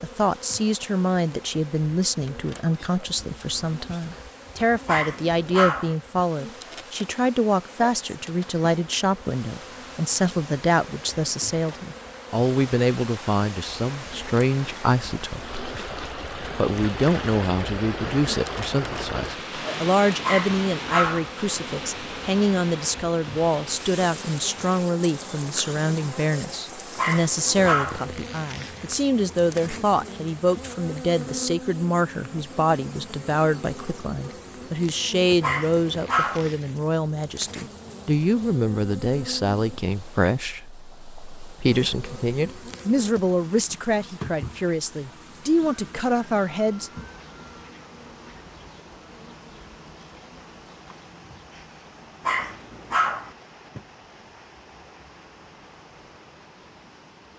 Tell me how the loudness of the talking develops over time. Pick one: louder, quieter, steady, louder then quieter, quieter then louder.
steady.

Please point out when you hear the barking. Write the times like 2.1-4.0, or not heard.
4.8-6.0, 20.2-21.3, 26.9-28.1, 35.4-36.5, 52.2-53.3.